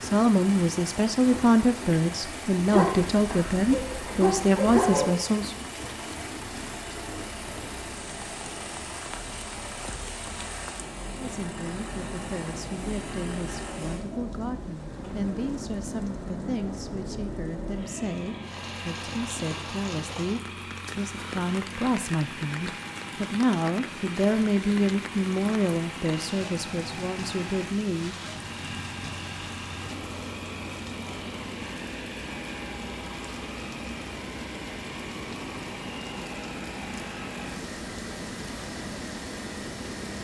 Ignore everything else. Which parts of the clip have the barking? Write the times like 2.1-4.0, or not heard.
2.7-5.1.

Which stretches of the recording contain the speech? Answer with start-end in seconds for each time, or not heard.
0.0-5.5, 11.2-28.1.